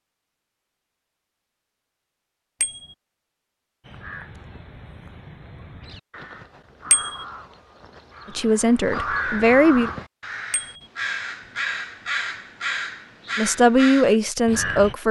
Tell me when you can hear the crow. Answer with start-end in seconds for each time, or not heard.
3.8-14.9.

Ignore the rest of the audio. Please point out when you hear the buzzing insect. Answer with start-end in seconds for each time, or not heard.
not heard.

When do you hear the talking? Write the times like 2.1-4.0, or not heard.
8.3-9.9, 13.3-15.0.